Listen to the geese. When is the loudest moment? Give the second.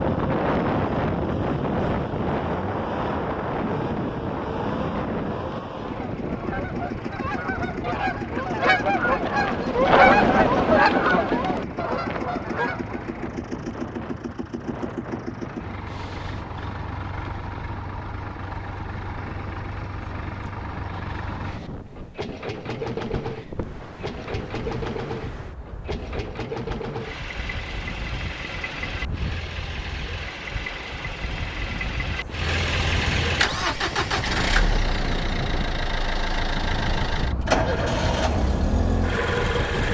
10 s.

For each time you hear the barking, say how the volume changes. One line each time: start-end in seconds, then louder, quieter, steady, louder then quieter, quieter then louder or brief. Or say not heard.
not heard.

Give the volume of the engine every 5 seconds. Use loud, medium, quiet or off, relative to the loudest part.
medium, medium, medium, medium, medium, medium, loud, loud.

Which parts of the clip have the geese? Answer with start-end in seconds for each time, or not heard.
5.8-13.2.